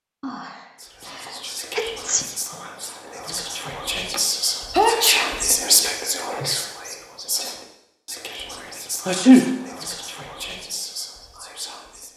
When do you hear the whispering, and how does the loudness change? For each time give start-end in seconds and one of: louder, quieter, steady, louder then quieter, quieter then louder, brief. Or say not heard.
0.8-12.1 louder then quieter.